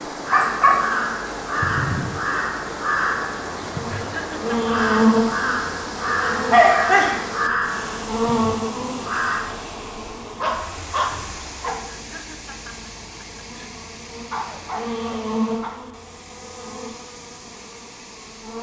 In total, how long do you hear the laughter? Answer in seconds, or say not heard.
3 s.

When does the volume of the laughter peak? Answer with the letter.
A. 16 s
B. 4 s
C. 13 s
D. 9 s
B.